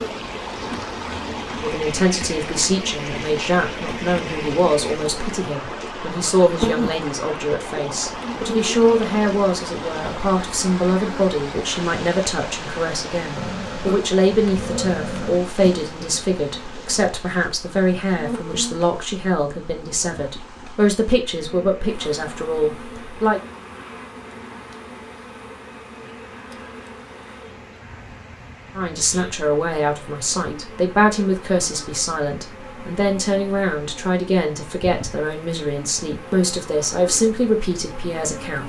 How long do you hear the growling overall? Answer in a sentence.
You can hear the growling for 2 seconds altogether.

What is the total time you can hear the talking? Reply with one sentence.
You can hear the talking for 32 seconds altogether.